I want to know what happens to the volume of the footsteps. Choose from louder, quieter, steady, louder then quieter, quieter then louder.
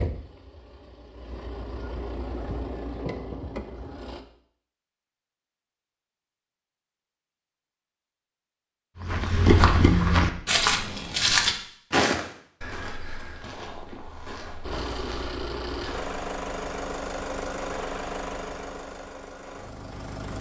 quieter.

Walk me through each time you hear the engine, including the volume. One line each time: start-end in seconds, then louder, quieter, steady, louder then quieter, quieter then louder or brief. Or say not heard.
0.0-4.2 louder
14.6-20.3 quieter.